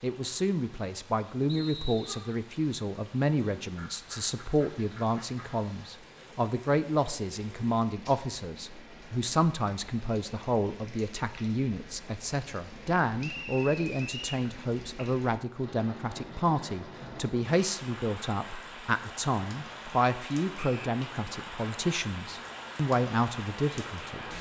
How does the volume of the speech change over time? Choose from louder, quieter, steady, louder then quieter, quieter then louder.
steady.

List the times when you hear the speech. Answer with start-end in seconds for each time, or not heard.
0.0-24.3.